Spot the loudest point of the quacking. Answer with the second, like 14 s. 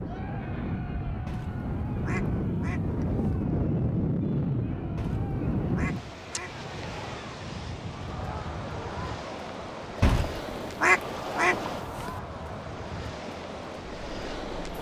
11 s.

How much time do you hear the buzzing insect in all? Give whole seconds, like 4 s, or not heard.
not heard.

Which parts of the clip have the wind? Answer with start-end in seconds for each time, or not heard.
0.0-14.7.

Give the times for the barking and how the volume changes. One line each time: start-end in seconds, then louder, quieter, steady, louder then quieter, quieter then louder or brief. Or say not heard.
not heard.